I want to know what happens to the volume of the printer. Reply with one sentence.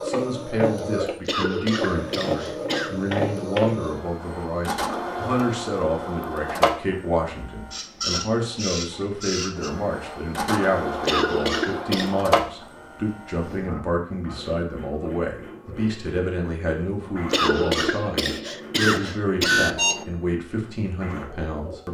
The loudness of the printer goes down.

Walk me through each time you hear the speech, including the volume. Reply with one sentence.
The speech can be heard from 0.0 to 21.8 s, at a steady volume.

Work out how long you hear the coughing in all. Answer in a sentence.
The coughing can be heard for 5 seconds in total.